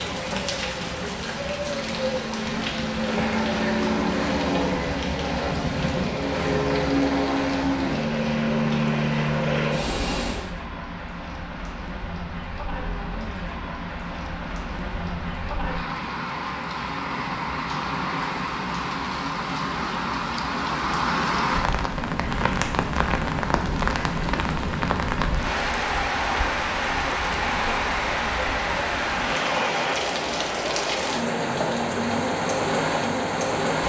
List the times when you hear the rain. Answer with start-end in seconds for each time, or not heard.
0.0-33.8.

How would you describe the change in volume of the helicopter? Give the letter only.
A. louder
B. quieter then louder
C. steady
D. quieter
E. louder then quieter
A.